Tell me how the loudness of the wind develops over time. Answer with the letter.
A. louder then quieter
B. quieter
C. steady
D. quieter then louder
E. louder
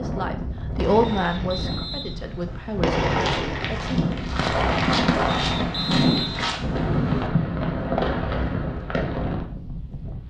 C.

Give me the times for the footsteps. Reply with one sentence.
The footsteps can be heard from 3.0 to 6.8 s.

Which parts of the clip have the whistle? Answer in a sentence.
You can hear the whistle from 1.0 to 2.9 s and from 5.3 to 7.3 s.